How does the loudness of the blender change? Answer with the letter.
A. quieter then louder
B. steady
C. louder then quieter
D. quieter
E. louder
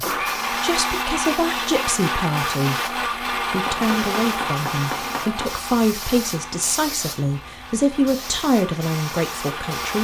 D.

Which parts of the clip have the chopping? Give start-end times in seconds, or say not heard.
3.6-5.5.